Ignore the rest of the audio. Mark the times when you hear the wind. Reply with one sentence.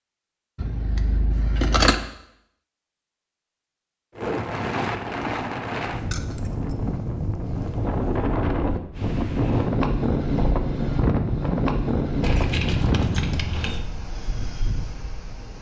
The wind can be heard from 4.2 to 15.5 s.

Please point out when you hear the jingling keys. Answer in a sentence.
You can hear the jingling keys from 0.6 to 1.9 s, from 6.1 to 6.8 s and from 12.2 to 13.8 s.